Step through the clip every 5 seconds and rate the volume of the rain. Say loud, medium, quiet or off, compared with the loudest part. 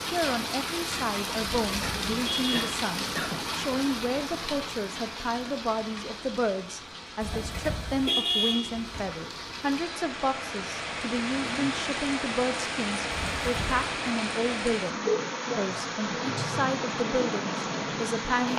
loud, medium, loud, loud.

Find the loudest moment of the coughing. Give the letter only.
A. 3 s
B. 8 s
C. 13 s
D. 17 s
A.